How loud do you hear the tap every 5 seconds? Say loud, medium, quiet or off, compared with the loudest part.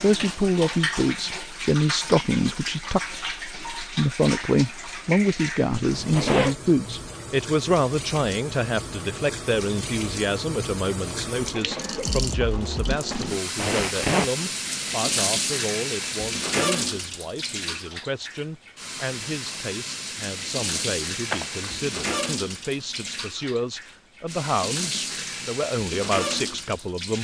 loud, medium, loud, loud, loud, loud.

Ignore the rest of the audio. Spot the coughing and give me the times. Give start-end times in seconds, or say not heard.
11.5-12.2.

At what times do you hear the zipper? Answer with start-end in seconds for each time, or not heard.
6.0-6.5, 13.6-14.3, 21.2-21.8.